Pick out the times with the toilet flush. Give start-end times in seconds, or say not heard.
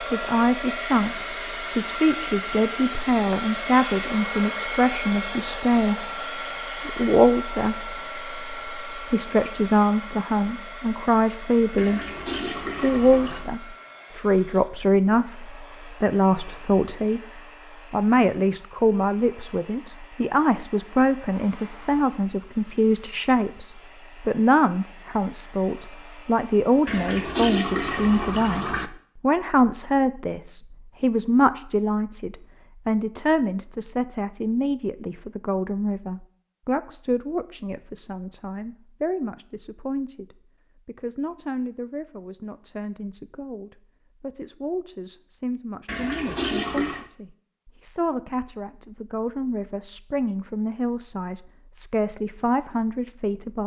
11.8-13.4, 26.9-28.9, 45.9-47.0.